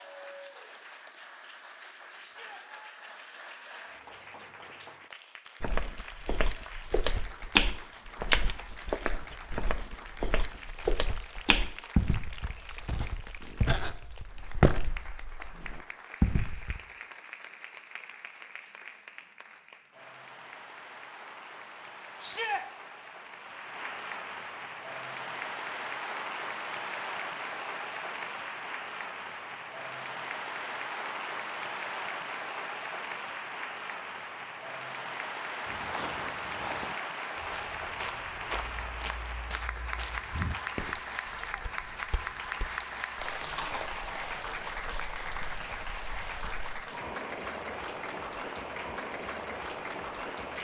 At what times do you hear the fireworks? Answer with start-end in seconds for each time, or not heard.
not heard.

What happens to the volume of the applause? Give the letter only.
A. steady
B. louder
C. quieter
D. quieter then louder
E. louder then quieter
B.